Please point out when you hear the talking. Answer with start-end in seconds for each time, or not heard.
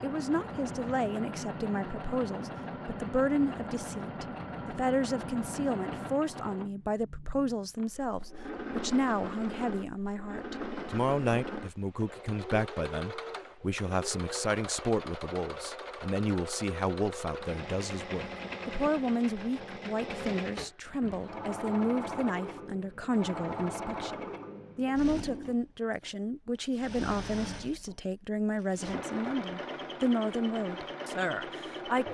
0.0-32.0.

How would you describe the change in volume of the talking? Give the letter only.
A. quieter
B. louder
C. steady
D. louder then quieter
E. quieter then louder
C.